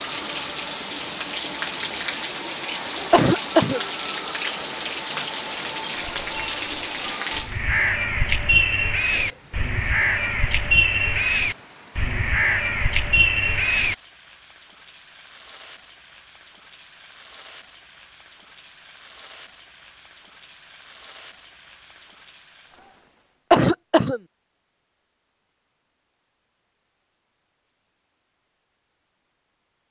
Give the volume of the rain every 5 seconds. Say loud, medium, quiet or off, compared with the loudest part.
loud, loud, quiet, quiet, quiet, off.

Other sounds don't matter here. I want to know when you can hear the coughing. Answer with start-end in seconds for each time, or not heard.
3.1-3.8, 23.5-24.2.